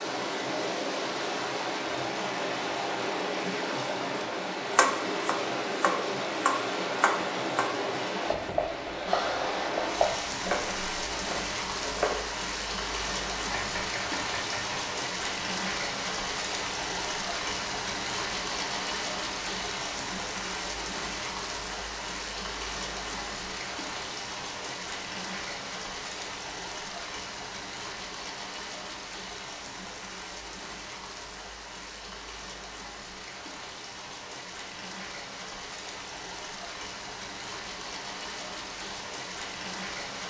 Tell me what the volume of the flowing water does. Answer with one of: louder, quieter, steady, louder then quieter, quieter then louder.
quieter.